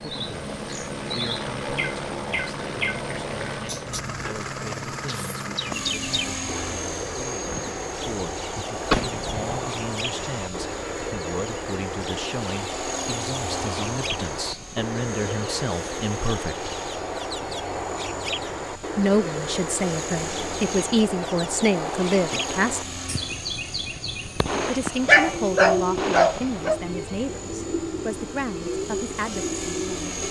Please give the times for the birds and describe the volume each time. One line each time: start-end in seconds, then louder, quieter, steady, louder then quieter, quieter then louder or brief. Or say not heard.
0.0-30.2 steady.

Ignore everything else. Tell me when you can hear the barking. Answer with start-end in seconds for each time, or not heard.
25.1-26.8.